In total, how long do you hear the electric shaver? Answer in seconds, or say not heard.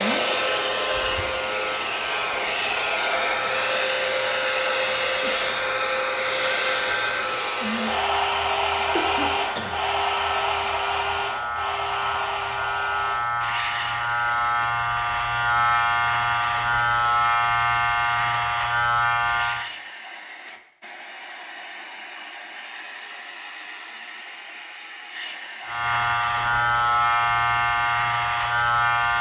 23 s.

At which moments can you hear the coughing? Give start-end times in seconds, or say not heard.
8.9-9.8.